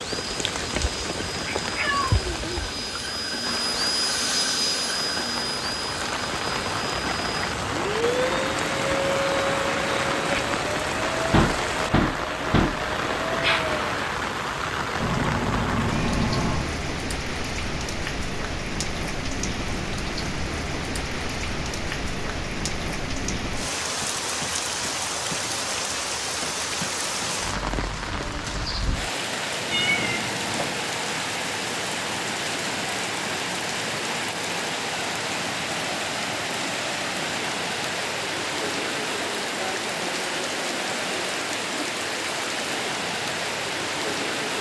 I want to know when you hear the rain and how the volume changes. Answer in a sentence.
You can hear the rain from 0.0 to 44.5 s, at a steady volume.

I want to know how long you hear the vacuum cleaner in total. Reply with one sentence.
The vacuum cleaner can be heard for 14 seconds in total.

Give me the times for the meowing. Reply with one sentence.
You can hear the meowing from 1.6 to 2.9 s, from 15.0 to 16.7 s and from 29.7 to 30.8 s.